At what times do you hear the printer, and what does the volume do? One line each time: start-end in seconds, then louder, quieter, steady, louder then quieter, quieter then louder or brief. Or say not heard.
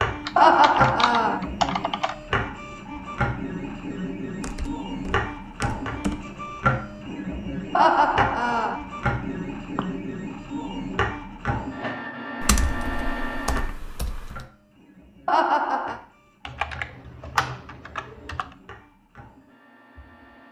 0.0-20.4 quieter.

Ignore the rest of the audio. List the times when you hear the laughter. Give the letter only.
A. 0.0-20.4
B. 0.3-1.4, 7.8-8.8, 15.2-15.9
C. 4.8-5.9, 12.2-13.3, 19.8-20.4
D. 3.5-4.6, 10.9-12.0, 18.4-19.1
B.